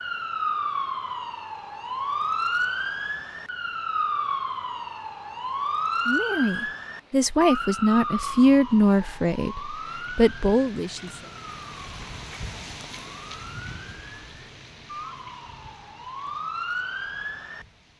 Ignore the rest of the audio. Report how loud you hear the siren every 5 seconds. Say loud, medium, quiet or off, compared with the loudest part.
loud, loud, quiet, medium.